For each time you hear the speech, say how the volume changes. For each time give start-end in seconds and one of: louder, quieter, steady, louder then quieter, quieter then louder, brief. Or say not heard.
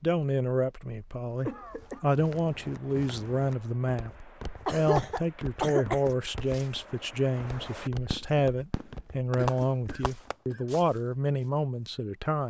0.0-12.4 steady.